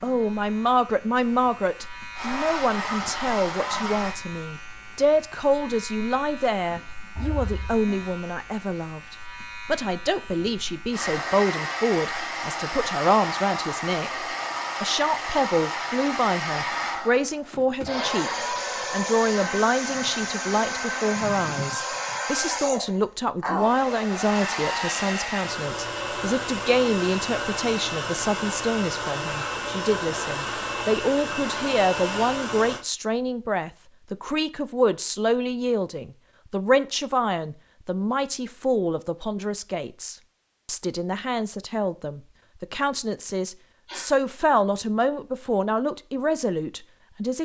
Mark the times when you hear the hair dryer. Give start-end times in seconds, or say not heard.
2.1-4.2, 10.9-32.9.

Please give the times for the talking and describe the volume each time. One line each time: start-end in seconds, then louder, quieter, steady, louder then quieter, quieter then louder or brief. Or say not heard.
0.0-47.4 steady.